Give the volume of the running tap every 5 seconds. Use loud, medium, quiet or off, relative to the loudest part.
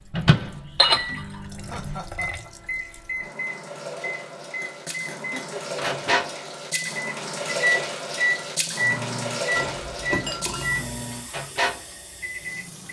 medium, loud, medium.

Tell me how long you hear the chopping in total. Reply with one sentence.
The chopping can't be heard in this clip.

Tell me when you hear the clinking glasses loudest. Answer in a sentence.
The loudest moment of the clinking glasses is at 1 second.